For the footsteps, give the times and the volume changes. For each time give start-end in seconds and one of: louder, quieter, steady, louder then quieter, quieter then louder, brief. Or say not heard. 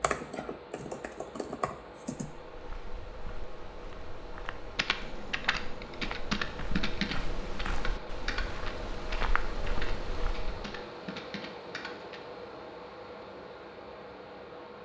2.4-10.8 louder.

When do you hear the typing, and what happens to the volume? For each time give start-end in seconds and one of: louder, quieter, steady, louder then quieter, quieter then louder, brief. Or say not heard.
0.0-2.3 brief
4.8-12.2 quieter.